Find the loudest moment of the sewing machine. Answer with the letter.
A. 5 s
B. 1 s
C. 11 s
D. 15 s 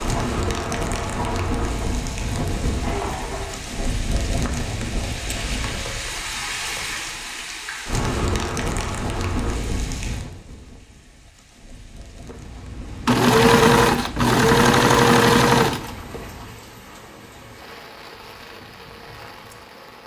D.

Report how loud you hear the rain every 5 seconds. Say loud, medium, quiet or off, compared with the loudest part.
loud, loud, quiet, quiet.